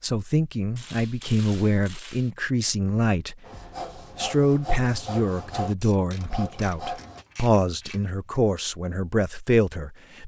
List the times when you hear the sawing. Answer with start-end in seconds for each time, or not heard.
3.5-7.2.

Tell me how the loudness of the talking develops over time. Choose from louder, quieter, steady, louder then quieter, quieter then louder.
steady.